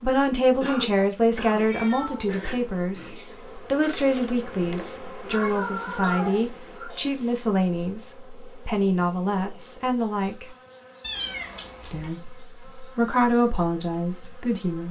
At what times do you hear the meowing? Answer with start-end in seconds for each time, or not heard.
1.5-3.4, 5.2-6.9, 11.0-12.1.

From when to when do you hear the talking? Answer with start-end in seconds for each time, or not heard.
0.0-10.4, 11.8-14.8.